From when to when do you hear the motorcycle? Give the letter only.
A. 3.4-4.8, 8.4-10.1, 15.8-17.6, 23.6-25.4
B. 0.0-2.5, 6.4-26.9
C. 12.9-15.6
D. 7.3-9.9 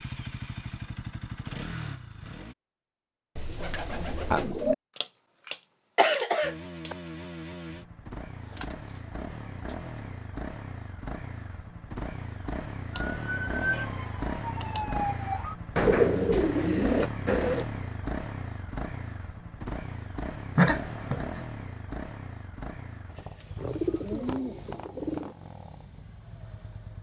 B.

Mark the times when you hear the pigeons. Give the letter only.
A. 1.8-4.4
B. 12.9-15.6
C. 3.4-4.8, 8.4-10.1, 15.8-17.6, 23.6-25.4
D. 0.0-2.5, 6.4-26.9
C.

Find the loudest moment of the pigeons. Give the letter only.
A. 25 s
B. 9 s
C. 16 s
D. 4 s
C.